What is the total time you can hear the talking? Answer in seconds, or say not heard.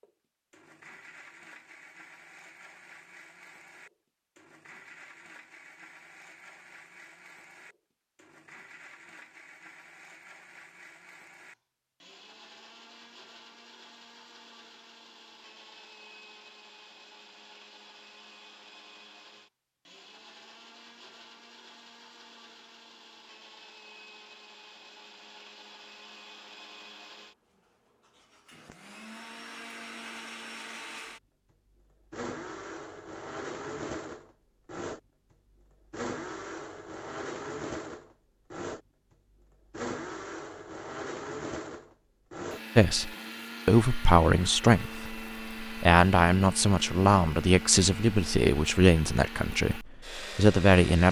8 s.